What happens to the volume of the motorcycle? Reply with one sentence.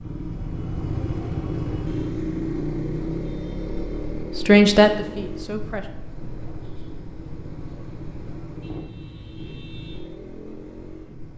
The loudness of the motorcycle goes down.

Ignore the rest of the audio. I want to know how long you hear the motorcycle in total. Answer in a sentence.
You can hear the motorcycle for 11 seconds altogether.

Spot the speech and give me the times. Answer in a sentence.
The speech can be heard from 4.3 to 5.9 s.